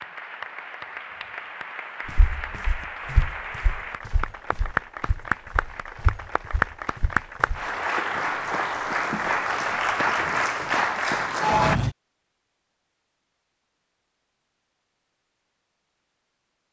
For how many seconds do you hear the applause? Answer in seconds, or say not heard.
12 s.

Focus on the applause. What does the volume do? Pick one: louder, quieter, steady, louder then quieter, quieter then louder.
louder.